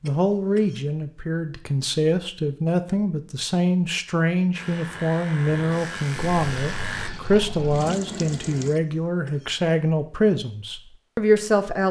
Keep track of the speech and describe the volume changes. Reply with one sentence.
The loudness of the speech stays about the same.